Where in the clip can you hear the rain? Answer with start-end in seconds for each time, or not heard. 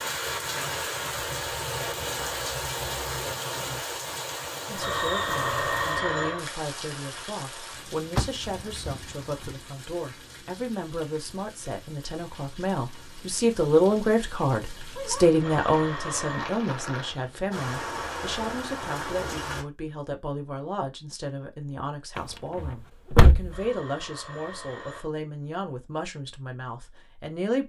0.0-19.6.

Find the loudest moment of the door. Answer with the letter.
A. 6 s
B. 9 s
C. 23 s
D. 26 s
C.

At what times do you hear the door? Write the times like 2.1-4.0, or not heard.
8.2-9.6, 22.1-23.6.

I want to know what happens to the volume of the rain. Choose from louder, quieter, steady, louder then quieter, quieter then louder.
quieter then louder.